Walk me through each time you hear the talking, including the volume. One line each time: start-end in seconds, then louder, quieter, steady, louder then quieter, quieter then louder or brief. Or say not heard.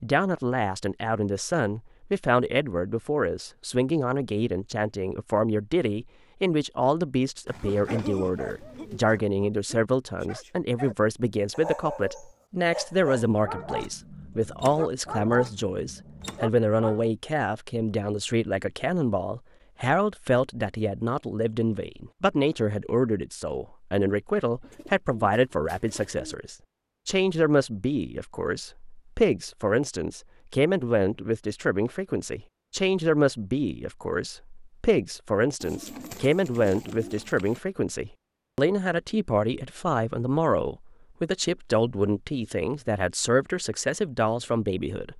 0.0-45.1 steady.